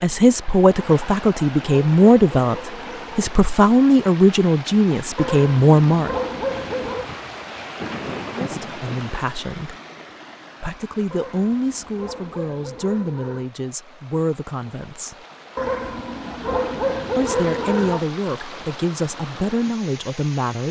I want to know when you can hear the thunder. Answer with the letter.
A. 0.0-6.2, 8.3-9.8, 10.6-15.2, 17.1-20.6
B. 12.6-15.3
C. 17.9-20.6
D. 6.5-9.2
D.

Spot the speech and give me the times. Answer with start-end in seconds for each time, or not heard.
0.0-6.2, 8.3-9.8, 10.6-15.2, 17.1-20.6.